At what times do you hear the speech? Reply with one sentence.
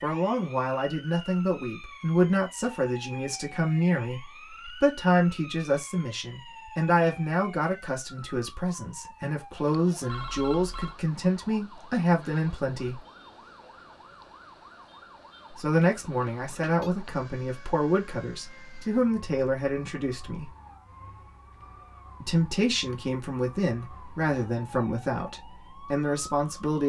The speech can be heard from 0.0 to 13.0 s, from 15.6 to 20.5 s and from 22.2 to 26.8 s.